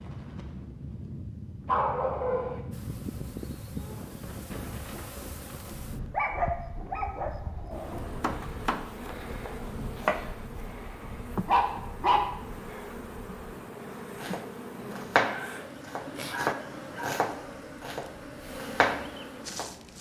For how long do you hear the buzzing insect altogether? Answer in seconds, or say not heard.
17 s.